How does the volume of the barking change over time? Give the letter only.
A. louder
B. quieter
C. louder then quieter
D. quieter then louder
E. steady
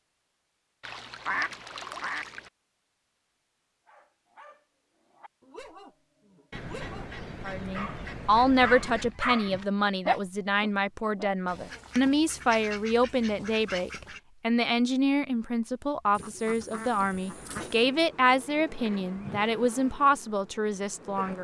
A.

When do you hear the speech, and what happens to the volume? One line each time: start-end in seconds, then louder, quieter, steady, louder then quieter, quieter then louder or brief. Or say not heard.
7.5-21.3 steady.